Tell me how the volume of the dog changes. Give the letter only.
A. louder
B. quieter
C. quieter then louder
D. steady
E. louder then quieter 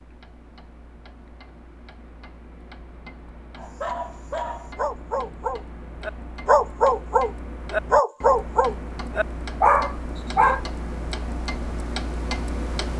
A.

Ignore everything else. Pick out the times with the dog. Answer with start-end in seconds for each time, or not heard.
3.5-10.6.